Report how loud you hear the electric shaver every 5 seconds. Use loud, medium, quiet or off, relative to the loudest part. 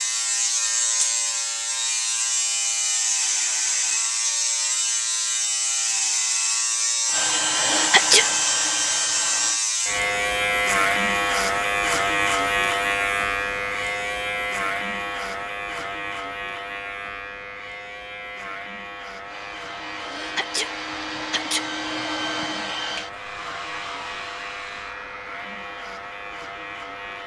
loud, loud, loud, medium, quiet, quiet.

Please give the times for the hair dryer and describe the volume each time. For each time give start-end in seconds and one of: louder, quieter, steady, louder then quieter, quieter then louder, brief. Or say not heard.
7.0-9.6 brief
19.2-27.2 louder then quieter.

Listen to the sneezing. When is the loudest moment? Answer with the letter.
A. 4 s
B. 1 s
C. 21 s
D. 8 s
D.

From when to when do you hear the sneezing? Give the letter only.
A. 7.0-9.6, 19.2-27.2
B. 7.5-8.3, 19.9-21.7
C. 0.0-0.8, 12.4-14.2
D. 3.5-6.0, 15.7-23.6
B.